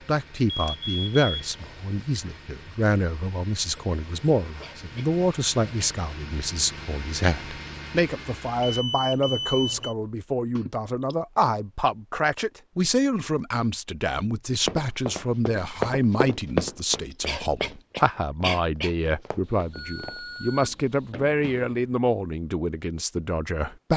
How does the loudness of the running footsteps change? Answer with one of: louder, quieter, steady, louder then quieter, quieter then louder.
quieter.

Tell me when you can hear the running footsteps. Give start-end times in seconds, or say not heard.
14.6-21.8.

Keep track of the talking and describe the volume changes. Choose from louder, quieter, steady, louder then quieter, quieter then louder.
steady.